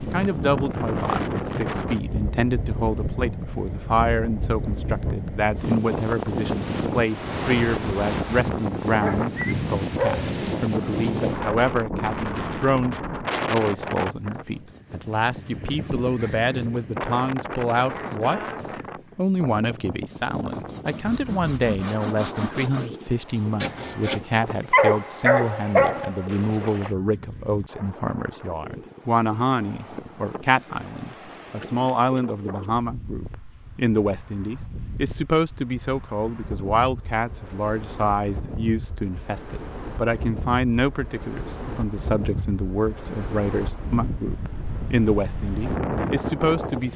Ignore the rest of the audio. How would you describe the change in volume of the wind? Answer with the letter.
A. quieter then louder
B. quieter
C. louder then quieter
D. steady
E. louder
A.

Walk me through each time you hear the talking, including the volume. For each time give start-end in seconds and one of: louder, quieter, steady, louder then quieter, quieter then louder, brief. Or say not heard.
0.0-18.4 steady
19.1-46.9 steady.